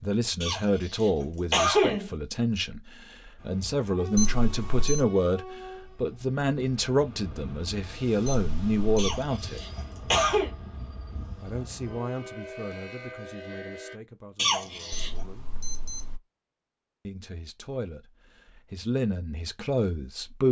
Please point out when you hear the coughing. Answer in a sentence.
The coughing can be heard from 0.4 to 2.1 s, from 8.9 to 10.5 s and from 14.3 to 15.1 s.